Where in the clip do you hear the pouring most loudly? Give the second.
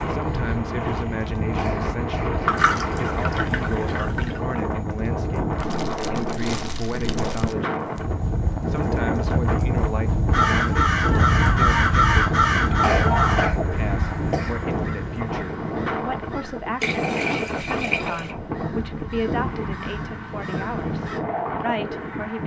3 s.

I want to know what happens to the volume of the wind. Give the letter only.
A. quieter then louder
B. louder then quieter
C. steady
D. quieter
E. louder
C.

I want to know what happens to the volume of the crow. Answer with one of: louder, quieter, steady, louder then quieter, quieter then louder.
quieter.